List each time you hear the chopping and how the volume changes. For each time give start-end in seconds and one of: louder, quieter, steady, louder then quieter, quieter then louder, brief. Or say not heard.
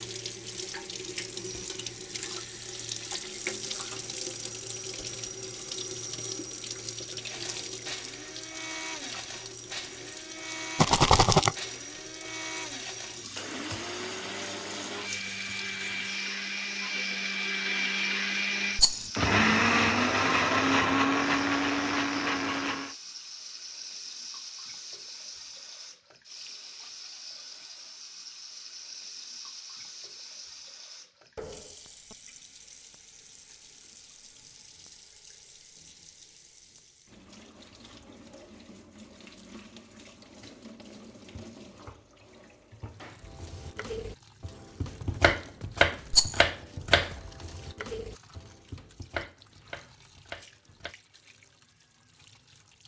43.4-51.0 louder then quieter.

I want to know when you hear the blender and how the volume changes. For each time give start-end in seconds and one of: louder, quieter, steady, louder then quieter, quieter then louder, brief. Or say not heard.
7.2-22.9 louder.